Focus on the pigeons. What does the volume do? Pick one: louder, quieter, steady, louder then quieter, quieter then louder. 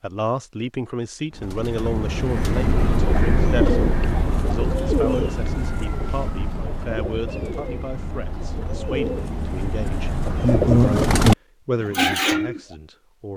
quieter then louder.